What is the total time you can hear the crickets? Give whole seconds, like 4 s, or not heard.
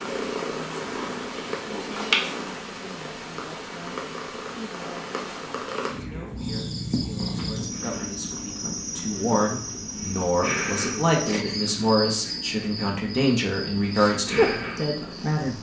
9 s.